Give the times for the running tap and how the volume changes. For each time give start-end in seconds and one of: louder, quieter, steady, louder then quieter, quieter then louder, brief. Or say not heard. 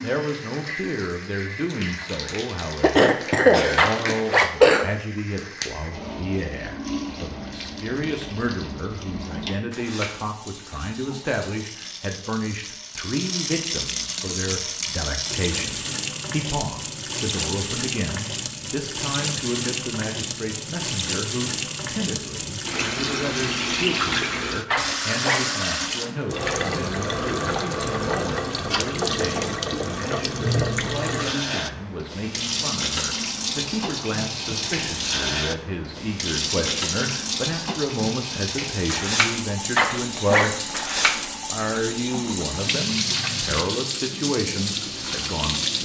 0.0-45.8 louder.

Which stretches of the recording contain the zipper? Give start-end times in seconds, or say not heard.
3.8-4.5, 24.7-26.6, 39.8-41.4.